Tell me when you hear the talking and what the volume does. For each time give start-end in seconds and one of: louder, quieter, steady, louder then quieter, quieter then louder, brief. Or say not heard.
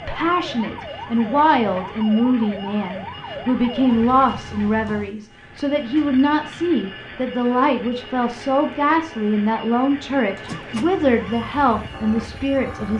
0.1-12.9 steady.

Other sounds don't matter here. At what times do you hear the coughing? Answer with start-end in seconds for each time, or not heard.
not heard.